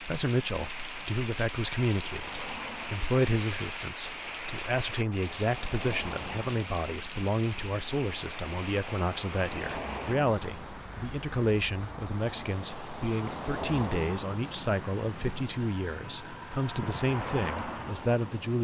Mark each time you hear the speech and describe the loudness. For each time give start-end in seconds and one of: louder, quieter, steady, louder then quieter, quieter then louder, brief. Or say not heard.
0.0-18.5 steady.